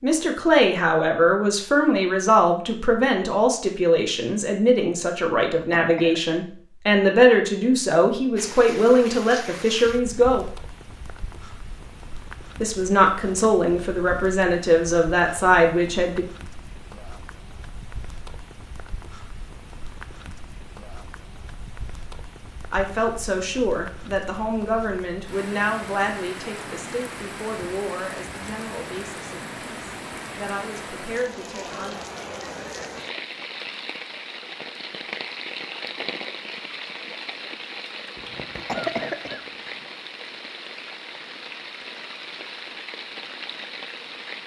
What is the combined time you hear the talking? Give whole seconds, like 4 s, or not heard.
23 s.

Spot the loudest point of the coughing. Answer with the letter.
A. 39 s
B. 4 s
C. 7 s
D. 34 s
A.